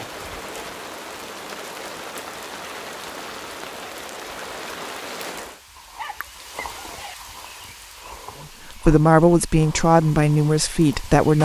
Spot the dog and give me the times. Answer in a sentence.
The dog can be heard from 6.0 to 7.2 s.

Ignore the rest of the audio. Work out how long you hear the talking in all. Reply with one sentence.
You can hear the talking for 3 seconds altogether.